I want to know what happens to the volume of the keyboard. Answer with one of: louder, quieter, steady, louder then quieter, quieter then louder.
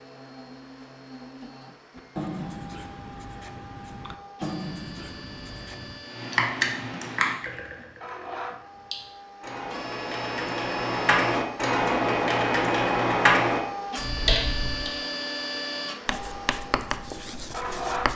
quieter then louder.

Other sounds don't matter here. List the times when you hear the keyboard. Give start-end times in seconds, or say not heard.
6.2-14.9.